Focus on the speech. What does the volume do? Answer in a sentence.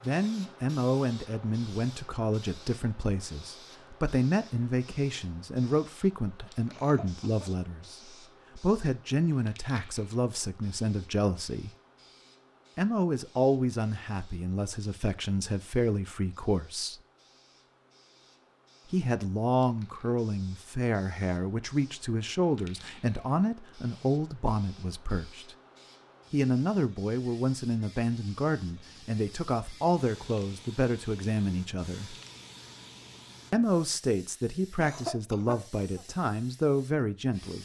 The loudness of the speech stays about the same.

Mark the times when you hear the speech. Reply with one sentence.
You can hear the speech from 0.0 to 11.7 s, from 12.8 to 17.0 s, from 18.9 to 25.6 s, from 26.3 to 32.1 s and from 33.5 to 37.6 s.